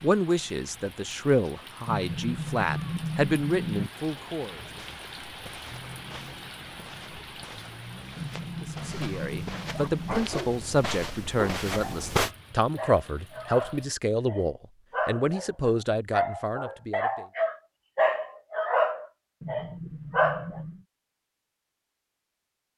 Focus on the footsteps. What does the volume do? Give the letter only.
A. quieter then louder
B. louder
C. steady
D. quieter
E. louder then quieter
B.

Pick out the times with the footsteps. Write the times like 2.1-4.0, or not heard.
4.6-12.3.